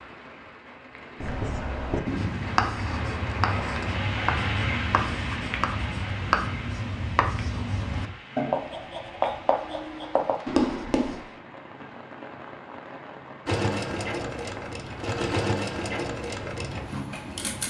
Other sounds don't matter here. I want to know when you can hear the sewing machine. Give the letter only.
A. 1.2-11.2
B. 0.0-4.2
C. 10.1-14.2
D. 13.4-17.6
D.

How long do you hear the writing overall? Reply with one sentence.
You can hear the writing for 10 seconds altogether.